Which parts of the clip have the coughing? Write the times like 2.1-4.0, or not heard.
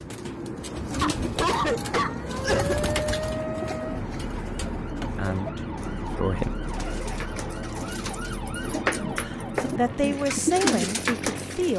1.0-3.0, 6.2-7.3.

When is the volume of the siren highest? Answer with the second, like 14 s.
3 s.